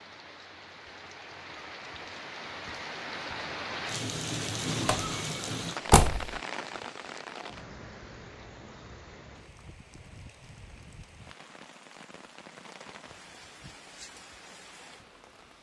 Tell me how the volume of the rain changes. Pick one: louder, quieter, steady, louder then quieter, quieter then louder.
louder then quieter.